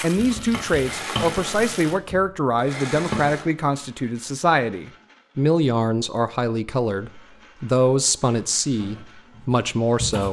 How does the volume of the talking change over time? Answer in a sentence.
The volume of the talking stays about the same.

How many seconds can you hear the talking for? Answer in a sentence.
You can hear the talking for 10 seconds altogether.